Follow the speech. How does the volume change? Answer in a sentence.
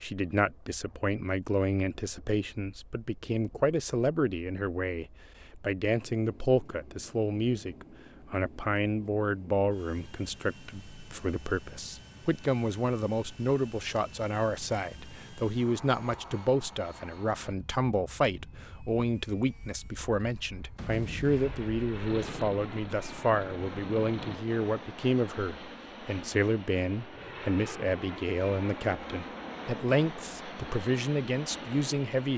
The loudness of the speech stays about the same.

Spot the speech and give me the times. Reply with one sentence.
The speech can be heard from 0.0 to 32.3 s.